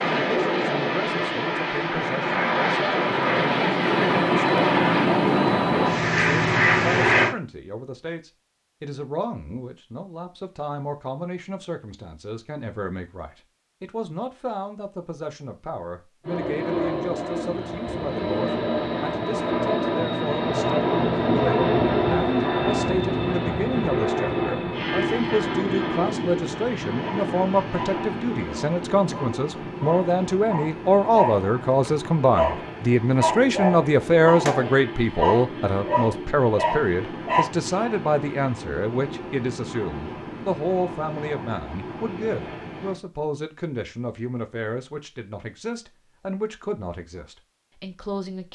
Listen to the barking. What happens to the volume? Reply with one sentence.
The loudness of the barking goes up.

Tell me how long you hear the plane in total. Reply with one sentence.
You can hear the plane for 34 seconds altogether.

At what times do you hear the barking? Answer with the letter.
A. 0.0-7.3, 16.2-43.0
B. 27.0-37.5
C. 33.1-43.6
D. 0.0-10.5
B.